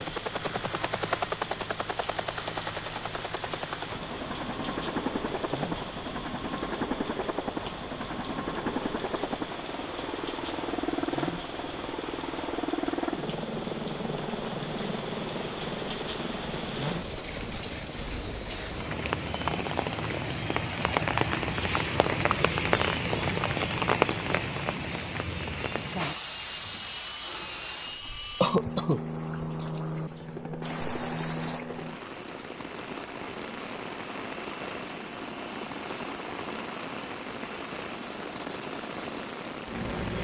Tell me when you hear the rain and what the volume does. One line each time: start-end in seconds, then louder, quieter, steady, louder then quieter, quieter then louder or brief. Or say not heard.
0.0-40.1 louder then quieter.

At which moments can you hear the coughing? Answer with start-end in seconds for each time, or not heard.
28.4-29.6.